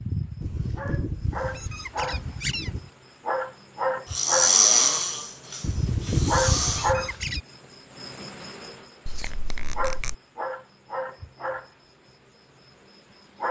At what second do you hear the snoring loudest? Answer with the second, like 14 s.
5 s.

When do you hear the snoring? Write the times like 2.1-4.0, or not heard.
4.1-7.0.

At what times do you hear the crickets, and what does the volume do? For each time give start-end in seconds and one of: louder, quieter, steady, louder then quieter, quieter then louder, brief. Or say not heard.
0.0-13.4 louder then quieter.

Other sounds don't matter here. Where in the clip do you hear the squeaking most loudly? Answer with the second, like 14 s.
6 s.